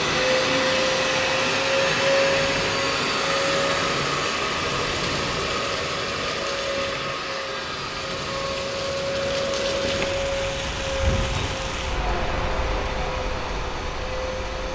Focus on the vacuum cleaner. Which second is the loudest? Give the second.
2 s.